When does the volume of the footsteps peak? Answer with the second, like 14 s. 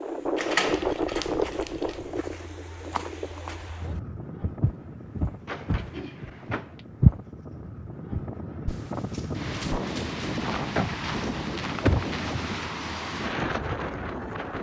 7 s.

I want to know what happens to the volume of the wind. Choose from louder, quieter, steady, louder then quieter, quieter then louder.
quieter then louder.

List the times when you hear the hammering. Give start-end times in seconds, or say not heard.
not heard.